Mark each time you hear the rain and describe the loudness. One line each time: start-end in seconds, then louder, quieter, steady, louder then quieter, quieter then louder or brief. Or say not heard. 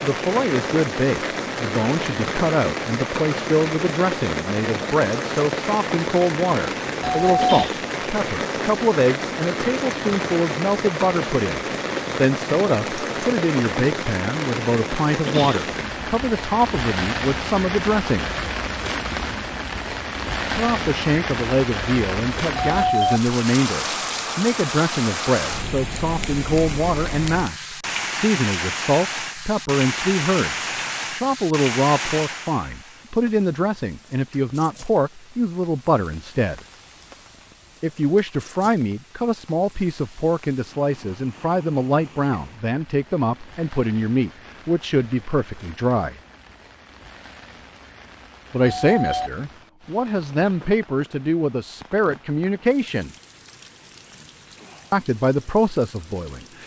0.0-56.6 quieter.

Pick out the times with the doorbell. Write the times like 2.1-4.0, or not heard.
7.0-7.5, 22.5-23.2, 48.6-49.3.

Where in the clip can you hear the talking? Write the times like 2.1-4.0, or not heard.
0.0-18.3, 20.5-36.6, 37.8-46.2, 48.5-53.1, 54.9-56.6.